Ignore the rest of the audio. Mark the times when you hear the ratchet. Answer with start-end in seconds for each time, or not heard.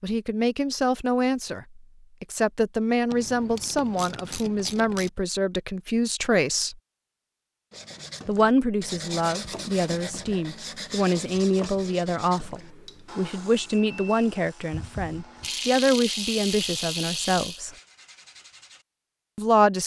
3.1-5.1, 14.7-17.6.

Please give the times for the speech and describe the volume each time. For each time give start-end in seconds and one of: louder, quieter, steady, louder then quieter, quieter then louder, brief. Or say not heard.
0.0-6.8 steady
8.2-17.7 steady
19.4-19.8 brief.